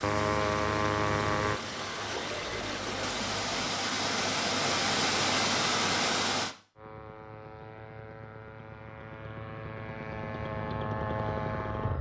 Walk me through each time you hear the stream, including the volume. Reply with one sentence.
You can hear the stream from 0.0 to 6.5 s, getting louder.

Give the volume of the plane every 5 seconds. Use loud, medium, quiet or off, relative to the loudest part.
loud, quiet, loud.